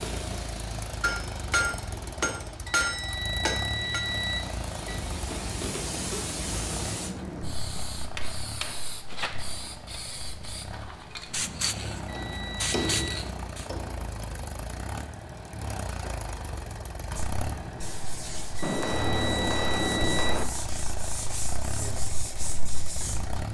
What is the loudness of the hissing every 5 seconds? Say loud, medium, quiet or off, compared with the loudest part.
medium, loud, loud, off, off.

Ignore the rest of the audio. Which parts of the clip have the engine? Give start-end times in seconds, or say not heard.
0.0-23.5.